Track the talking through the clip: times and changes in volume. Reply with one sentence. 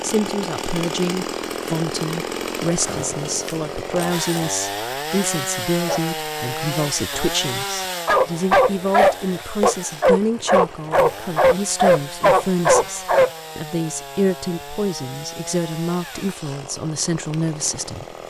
The talking can be heard from 0.0 to 18.1 s, at a steady volume.